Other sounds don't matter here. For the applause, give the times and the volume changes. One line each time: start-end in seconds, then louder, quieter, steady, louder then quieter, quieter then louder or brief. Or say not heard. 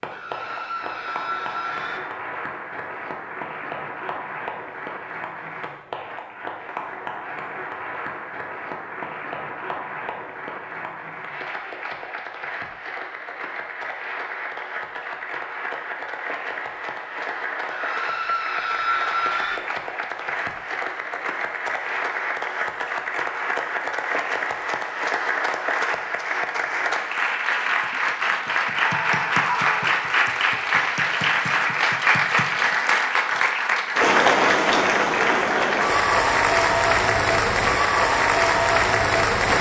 0.0-39.5 louder.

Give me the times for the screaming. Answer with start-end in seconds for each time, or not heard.
0.1-2.0, 17.7-19.6, 28.8-29.9.